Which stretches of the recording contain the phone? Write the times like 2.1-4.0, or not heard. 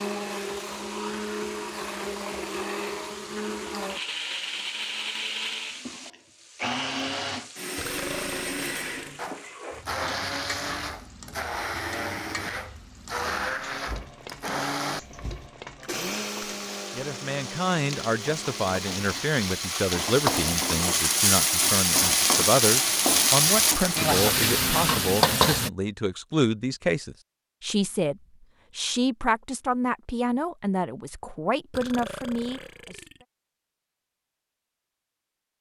not heard.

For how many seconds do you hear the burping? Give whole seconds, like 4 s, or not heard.
3 s.